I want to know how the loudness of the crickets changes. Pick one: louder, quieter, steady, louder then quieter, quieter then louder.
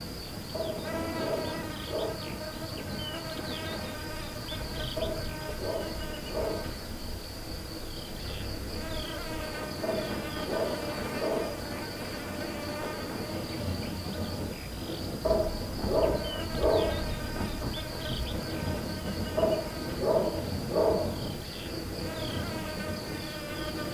steady.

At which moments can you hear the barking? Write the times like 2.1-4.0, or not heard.
0.5-2.2, 5.0-6.7, 9.8-11.7, 15.2-17.3, 19.4-21.4.